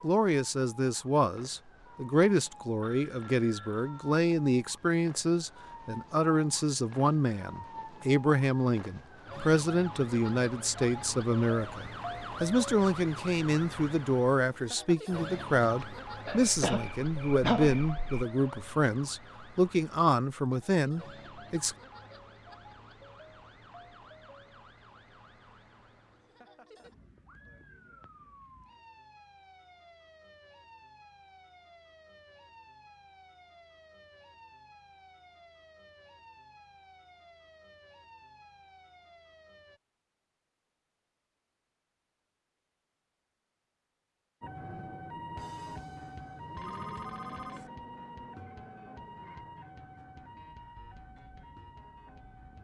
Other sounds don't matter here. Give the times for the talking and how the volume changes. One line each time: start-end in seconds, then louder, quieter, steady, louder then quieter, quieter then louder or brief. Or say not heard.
0.0-21.8 steady.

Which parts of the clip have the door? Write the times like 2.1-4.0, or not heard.
not heard.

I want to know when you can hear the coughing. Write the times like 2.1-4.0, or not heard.
16.2-18.2.